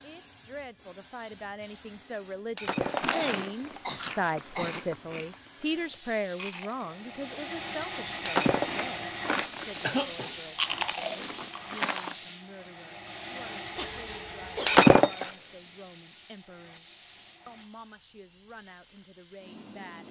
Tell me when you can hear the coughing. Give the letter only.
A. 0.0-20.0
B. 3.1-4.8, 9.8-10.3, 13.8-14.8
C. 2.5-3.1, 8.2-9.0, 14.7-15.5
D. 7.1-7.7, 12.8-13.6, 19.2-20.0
B.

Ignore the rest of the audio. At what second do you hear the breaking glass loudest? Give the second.
15 s.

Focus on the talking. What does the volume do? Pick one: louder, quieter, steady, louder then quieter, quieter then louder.
quieter.